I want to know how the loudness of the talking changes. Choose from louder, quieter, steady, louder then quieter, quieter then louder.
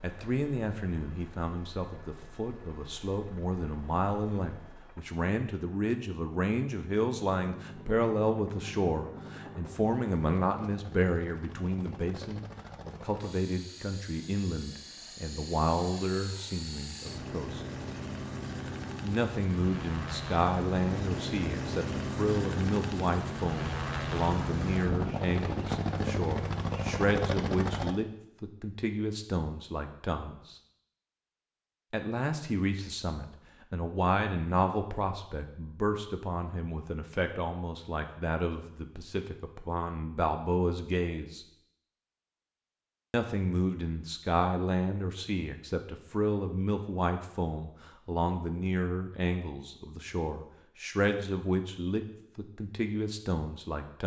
steady.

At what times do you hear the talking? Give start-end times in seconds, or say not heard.
0.0-17.6, 19.0-30.6, 31.9-41.5, 43.1-54.0.